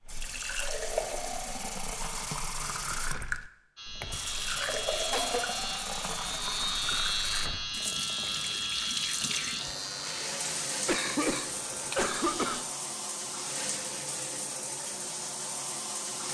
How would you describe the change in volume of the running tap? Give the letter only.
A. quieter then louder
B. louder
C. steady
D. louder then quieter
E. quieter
C.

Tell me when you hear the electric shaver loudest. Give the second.
7 s.